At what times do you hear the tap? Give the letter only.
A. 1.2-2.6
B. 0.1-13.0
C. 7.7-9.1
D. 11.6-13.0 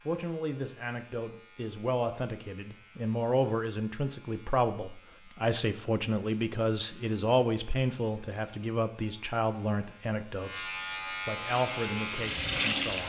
D.